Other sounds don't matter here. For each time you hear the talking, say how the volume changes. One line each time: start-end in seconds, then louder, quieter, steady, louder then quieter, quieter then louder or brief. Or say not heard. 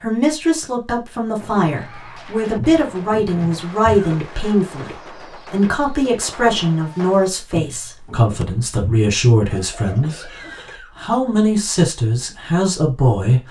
0.0-13.4 steady.